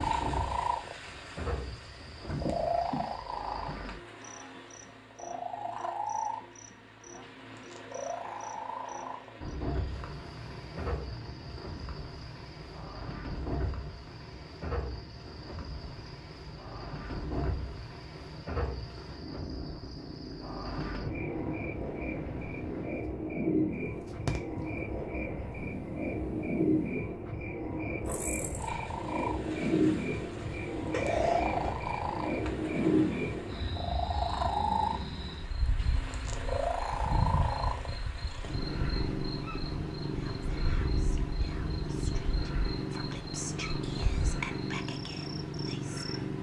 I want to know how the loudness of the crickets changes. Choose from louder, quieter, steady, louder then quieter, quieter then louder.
louder then quieter.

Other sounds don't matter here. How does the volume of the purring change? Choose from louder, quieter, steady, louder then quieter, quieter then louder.
quieter then louder.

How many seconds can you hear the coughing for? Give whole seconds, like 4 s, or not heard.
2 s.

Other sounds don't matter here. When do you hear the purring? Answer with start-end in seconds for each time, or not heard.
0.0-46.3.